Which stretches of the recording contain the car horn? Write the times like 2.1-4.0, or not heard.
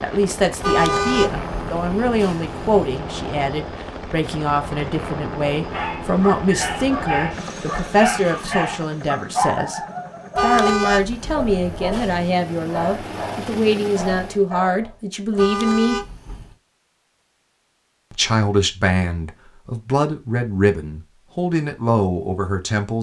0.6-3.0, 10.3-12.3, 15.3-16.6.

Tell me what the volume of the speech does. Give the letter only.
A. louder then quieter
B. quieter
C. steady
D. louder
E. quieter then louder
C.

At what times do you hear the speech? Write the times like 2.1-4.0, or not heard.
0.0-9.8, 10.4-16.0, 18.1-22.9.